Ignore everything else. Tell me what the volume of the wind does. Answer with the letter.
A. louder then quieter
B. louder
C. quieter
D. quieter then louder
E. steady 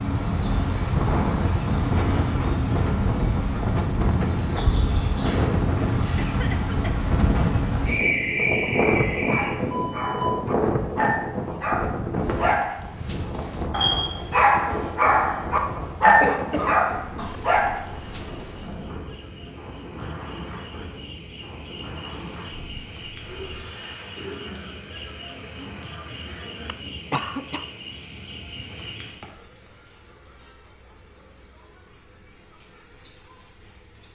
C.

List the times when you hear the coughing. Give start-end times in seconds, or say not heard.
6.0-7.1, 16.1-17.4, 26.6-27.6.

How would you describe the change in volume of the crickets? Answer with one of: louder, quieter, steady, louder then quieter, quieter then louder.
quieter then louder.